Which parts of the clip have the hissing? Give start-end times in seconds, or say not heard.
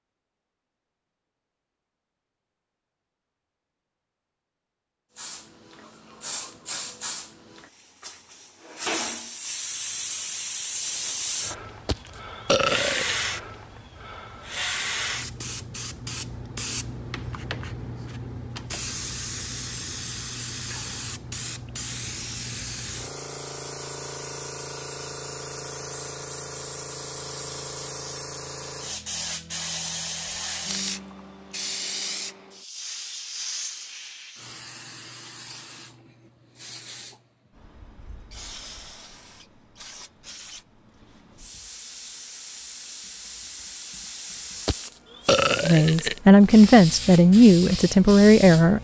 5.2-48.7.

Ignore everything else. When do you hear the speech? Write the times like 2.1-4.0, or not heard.
45.6-48.7.